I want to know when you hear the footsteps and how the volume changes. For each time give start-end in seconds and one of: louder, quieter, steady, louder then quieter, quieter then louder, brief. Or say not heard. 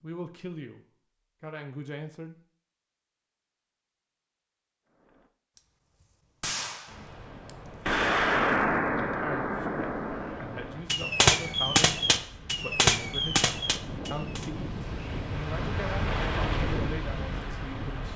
not heard.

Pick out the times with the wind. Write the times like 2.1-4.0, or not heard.
6.8-18.1.